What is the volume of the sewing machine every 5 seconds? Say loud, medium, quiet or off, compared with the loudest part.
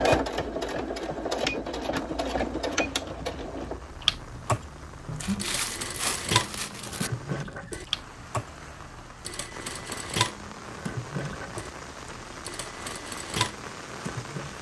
loud, medium, medium.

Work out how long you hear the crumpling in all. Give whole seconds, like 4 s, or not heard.
2 s.